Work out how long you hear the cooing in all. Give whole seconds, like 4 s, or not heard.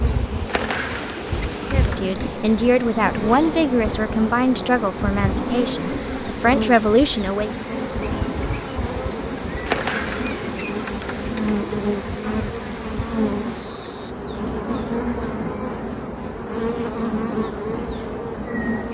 4 s.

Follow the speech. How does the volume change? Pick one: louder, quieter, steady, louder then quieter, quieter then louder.
quieter then louder.